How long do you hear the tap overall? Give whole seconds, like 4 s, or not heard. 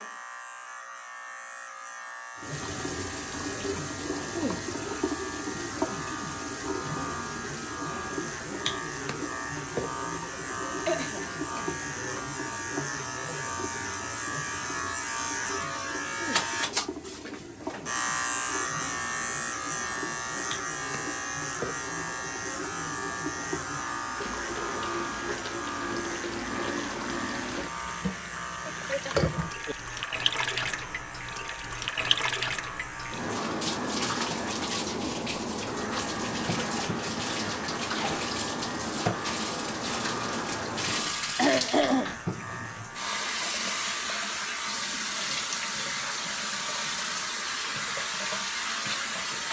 47 s.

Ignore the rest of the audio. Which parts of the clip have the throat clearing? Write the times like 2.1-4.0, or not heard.
10.8-11.8, 28.6-29.8, 41.4-42.1.